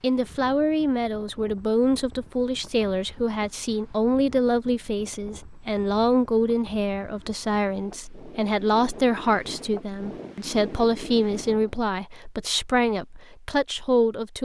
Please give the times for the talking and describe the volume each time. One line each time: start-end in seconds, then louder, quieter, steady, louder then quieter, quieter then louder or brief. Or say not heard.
0.0-14.4 steady.